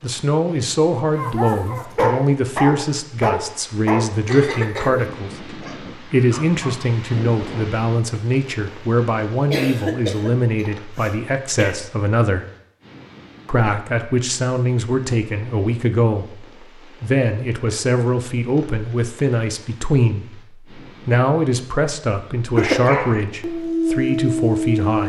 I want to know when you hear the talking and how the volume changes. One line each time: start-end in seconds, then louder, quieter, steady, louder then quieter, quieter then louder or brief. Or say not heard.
0.0-12.4 steady
13.4-25.0 steady.